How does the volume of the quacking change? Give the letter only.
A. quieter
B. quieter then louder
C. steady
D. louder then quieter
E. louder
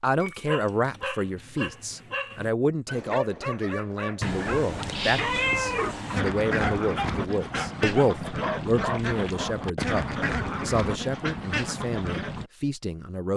C.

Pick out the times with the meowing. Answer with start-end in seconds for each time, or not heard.
4.2-6.2.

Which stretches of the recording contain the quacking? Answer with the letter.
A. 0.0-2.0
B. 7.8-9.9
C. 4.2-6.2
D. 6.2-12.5
D.